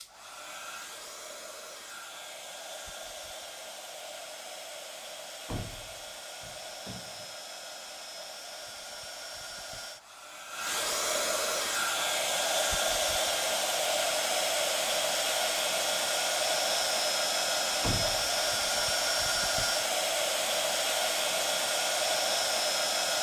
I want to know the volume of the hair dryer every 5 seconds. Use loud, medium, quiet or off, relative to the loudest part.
quiet, quiet, loud, loud, loud.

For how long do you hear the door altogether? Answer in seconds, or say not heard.
3 s.